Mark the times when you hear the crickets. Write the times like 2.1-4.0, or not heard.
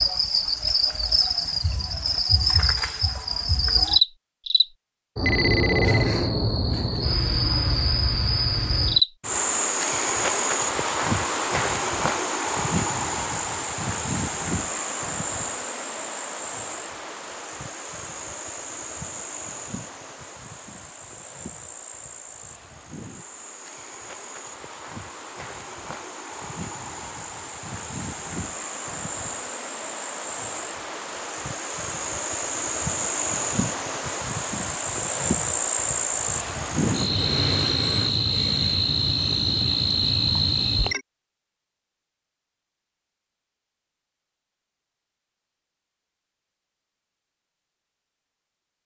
0.0-41.0.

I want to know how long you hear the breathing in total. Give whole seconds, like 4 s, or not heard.
not heard.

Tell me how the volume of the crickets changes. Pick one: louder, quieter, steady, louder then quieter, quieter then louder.
quieter then louder.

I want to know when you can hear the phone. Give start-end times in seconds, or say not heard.
5.2-6.1.